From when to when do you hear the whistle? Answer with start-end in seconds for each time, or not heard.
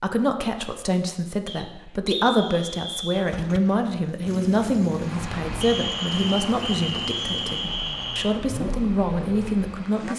1.4-3.2, 5.6-8.3.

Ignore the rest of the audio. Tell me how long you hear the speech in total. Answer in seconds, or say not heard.
10 s.